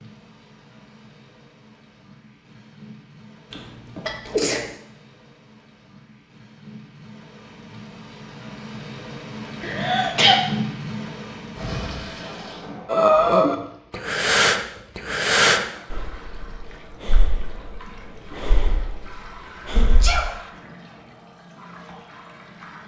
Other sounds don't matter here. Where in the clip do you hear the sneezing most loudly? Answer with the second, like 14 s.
10 s.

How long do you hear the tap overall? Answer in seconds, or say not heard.
23 s.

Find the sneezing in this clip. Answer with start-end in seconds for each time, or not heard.
3.5-4.7, 9.6-10.4, 19.8-20.4.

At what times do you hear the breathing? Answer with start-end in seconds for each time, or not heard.
12.8-20.2.